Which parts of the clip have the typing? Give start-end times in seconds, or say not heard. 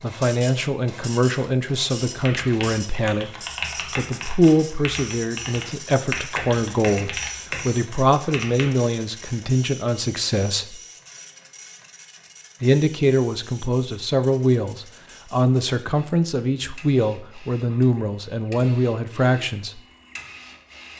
2.2-8.7.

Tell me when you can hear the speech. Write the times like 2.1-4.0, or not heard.
0.0-10.8, 12.6-19.8.